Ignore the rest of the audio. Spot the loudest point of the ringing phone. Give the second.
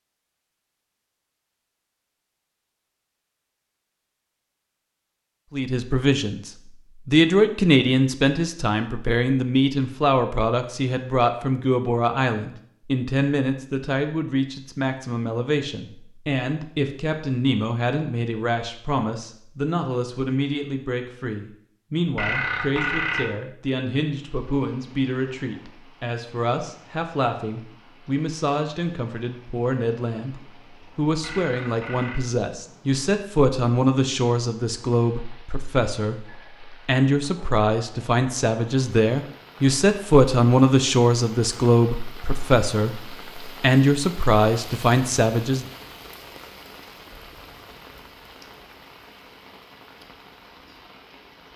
23 s.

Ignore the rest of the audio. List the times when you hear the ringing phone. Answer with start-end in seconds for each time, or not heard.
22.1-23.4, 31.2-32.2.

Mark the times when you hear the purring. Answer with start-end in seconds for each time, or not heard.
not heard.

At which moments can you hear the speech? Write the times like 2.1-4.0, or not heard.
5.5-45.6.